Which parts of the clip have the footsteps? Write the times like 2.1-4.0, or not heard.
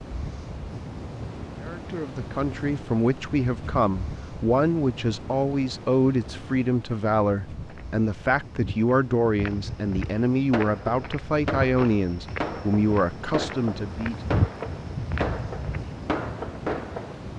7.7-15.9.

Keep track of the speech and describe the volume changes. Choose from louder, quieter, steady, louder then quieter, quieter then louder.
steady.